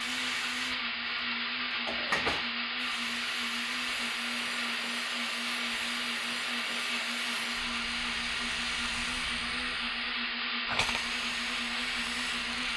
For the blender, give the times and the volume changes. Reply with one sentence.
You can hear the blender from 0.0 to 12.7 s, at a steady volume.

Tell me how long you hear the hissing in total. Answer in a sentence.
The hissing can be heard for 13 seconds in total.